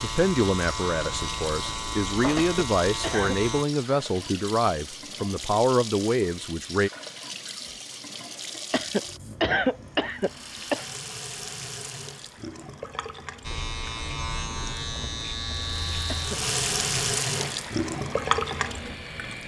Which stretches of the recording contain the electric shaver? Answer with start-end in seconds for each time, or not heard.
0.0-3.6, 13.4-19.4.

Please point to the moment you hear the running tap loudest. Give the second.
17 s.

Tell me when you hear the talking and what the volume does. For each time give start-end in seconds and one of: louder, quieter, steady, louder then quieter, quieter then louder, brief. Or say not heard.
0.0-6.9 steady.